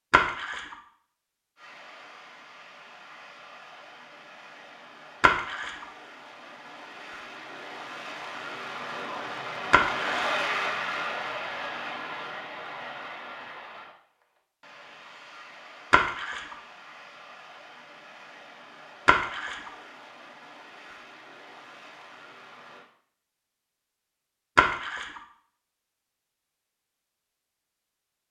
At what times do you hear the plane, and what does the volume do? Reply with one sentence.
You can hear the plane from 1.6 to 22.9 s, getting louder then quieter.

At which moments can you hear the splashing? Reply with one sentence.
You can hear the splashing from 0.1 to 0.8 s, from 5.2 to 5.8 s, from 9.7 to 10.1 s, from 15.9 to 16.6 s, from 19.1 to 19.7 s and from 24.6 to 25.2 s.